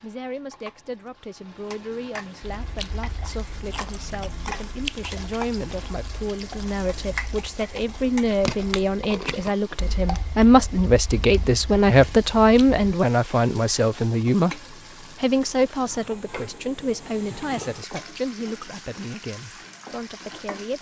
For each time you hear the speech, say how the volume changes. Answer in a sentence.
You can hear the speech from 0.0 to 20.7 s, getting louder then quieter.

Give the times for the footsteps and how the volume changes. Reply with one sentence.
The footsteps can't be heard in this clip.